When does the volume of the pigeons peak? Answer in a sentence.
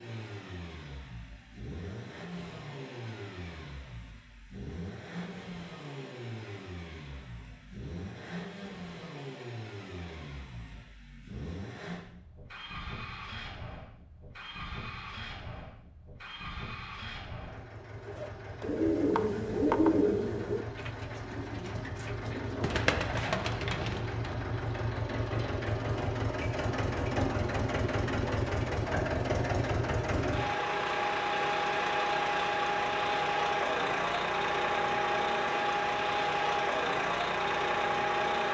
The loudest moment of the pigeons is at 20 seconds.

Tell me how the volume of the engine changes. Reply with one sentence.
The volume of the engine goes up.